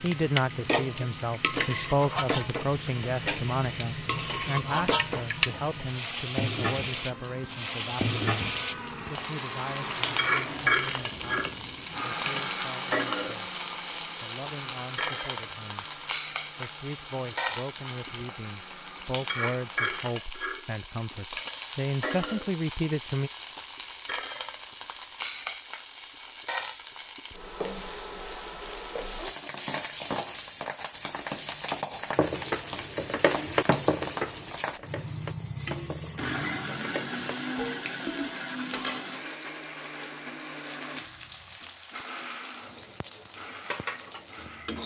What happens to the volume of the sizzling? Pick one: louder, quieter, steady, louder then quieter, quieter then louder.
quieter.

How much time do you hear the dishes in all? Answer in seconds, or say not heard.
7 s.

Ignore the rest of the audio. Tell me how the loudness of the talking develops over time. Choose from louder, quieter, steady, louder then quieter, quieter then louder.
quieter then louder.